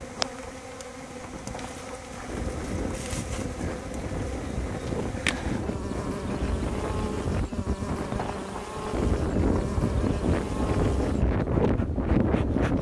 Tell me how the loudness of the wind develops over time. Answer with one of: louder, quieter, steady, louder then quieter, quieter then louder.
louder.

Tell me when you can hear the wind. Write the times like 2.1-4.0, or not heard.
0.0-12.7.